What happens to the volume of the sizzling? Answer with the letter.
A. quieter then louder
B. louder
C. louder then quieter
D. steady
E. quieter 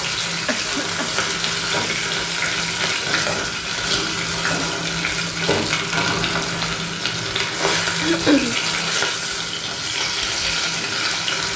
D.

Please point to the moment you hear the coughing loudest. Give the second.
8 s.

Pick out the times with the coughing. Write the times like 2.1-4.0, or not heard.
0.5-1.6, 8.0-8.6.